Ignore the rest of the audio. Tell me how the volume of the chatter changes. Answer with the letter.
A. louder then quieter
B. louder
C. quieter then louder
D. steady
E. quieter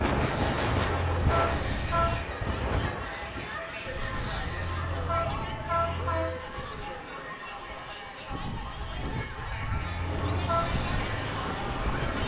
D.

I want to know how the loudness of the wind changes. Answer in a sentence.
The loudness of the wind goes down, then up.